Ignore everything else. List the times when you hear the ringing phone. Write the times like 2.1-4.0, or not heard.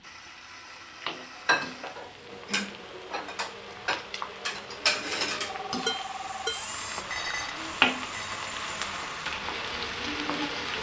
5.5-7.0.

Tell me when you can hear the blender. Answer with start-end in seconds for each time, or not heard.
0.0-10.7.